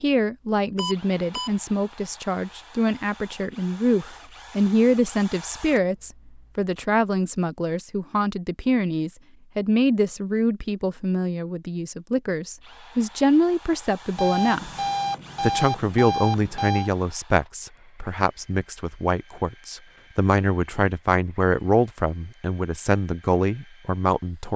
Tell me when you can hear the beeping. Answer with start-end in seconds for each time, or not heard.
0.8-1.5, 14.2-16.9.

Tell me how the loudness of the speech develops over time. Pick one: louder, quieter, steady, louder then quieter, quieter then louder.
steady.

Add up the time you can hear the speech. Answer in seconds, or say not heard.
24 s.